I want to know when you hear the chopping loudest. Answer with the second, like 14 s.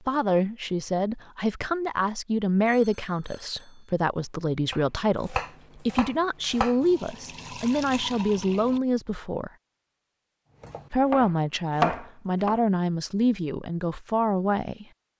12 s.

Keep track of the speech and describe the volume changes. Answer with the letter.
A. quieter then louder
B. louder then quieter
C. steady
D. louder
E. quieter
C.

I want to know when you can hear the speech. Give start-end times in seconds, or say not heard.
0.1-9.5, 10.9-14.8.